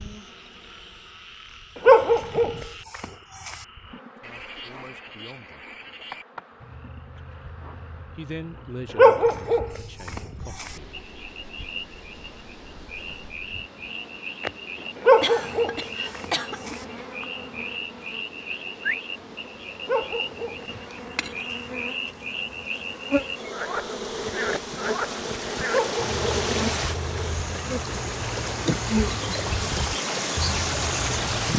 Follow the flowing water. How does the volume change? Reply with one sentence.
The loudness of the flowing water goes up.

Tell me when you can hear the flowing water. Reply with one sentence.
You can hear the flowing water from 10.5 to 31.5 s.